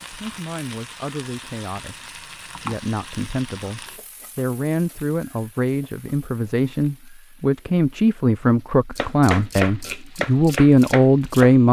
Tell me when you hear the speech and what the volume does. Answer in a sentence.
You can hear the speech from 0.0 to 11.6 s, getting louder.